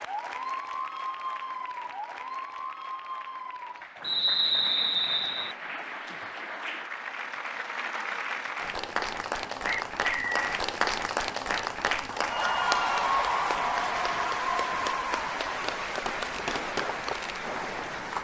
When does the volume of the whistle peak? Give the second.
4 s.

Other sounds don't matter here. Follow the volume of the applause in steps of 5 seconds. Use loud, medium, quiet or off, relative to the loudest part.
medium, medium, loud, medium.